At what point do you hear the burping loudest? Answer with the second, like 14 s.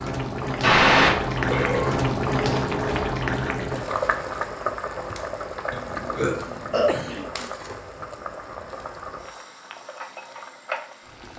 1 s.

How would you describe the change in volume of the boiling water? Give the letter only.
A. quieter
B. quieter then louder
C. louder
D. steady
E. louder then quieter
A.